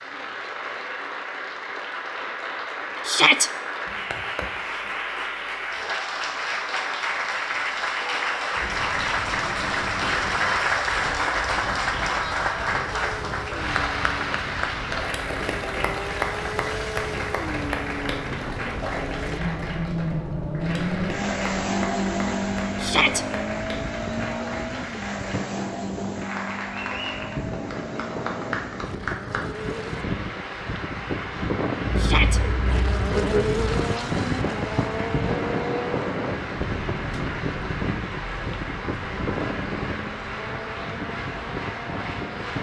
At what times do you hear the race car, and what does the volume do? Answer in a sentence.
The race car can be heard from 12.9 to 30.1 s, getting louder then quieter; and from 32.3 to 42.5 s, getting quieter.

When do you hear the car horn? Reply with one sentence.
You can hear the car horn from 31.9 to 33.6 s.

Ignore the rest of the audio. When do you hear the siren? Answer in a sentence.
The siren can't be heard in this clip.